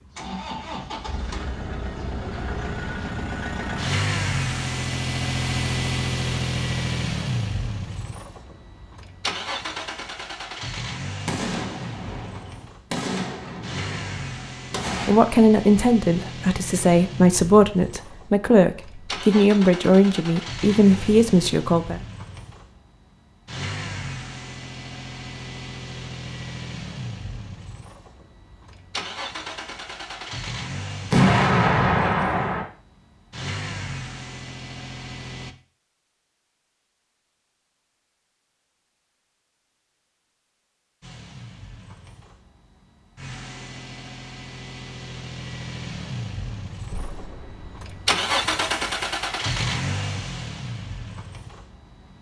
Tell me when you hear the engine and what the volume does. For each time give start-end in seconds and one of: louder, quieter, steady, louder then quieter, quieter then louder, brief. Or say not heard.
0.0-35.5 quieter
41.0-52.1 louder then quieter.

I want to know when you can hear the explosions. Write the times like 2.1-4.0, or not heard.
11.2-15.2, 31.1-32.6, 46.9-47.9.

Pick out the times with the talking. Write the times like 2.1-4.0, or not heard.
15.0-22.0.